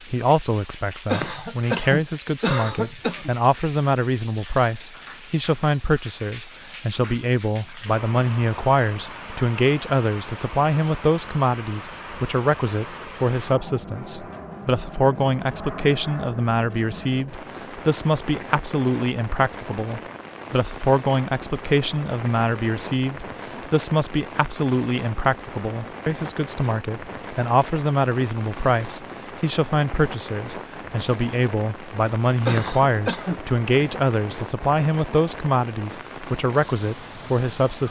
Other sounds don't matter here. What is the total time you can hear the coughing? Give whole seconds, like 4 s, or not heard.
3 s.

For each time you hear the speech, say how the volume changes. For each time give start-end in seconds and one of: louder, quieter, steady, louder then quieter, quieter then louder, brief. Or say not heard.
0.1-37.8 steady.